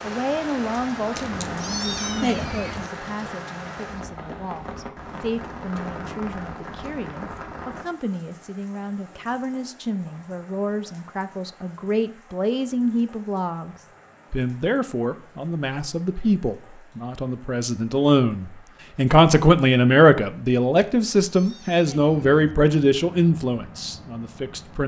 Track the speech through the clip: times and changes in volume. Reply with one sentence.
You can hear the speech from 0.0 to 24.8 s, getting louder.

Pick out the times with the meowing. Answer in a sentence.
You can hear the meowing from 1.1 to 2.9 s and from 20.8 to 22.6 s.